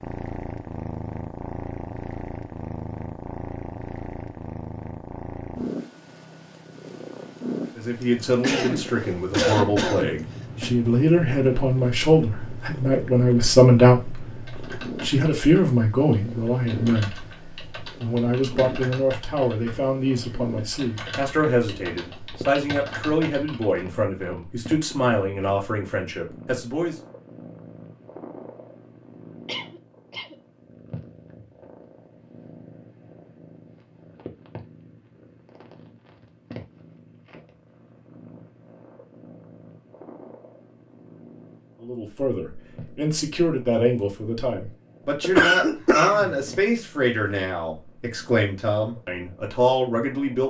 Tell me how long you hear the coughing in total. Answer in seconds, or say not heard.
4 s.